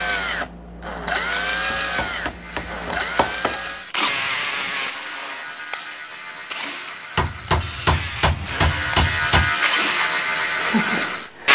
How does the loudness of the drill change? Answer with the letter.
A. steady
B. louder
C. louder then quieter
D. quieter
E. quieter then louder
E.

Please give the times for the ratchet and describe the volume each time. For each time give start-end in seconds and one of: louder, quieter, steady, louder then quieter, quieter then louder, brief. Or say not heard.
2.2-11.3 louder.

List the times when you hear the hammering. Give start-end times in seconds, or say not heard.
1.7-3.7, 7.2-9.6.